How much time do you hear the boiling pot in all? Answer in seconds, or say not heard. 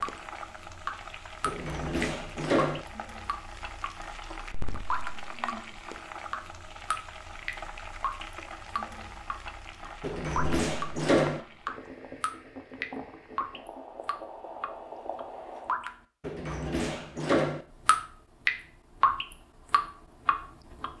16 s.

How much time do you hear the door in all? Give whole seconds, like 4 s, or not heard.
4 s.